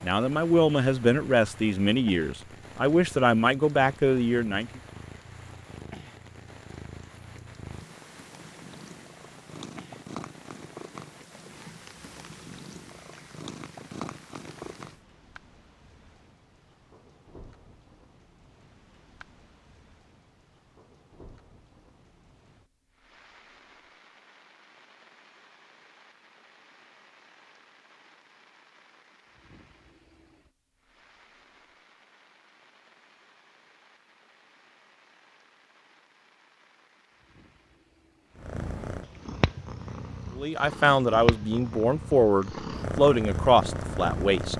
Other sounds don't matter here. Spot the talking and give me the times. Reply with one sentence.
The talking can be heard from 0.0 to 4.7 s and from 40.4 to 44.5 s.